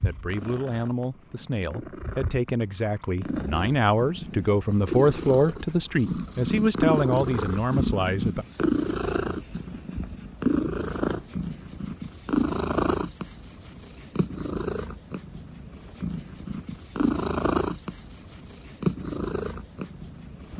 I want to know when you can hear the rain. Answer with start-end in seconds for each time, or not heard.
not heard.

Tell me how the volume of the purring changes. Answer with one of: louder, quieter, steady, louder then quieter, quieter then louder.
louder.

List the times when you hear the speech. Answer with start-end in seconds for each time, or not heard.
0.0-8.4.